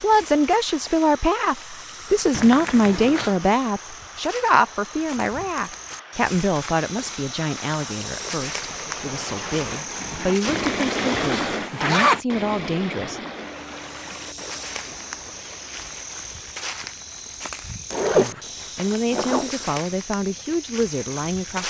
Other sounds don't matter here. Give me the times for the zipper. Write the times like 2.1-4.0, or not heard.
2.3-3.4, 10.4-12.2, 17.9-19.8.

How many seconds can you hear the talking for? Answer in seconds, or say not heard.
17 s.